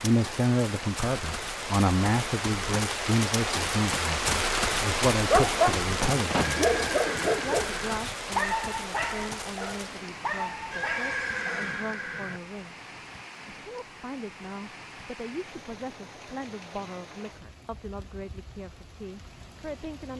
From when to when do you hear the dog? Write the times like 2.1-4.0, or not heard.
5.3-11.8.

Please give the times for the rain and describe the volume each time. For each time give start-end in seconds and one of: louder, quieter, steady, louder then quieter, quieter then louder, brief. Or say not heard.
0.0-20.1 quieter.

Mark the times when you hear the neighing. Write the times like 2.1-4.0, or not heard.
6.5-8.0, 10.7-12.4.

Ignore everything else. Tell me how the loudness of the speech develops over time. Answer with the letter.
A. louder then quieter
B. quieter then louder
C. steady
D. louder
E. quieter
E.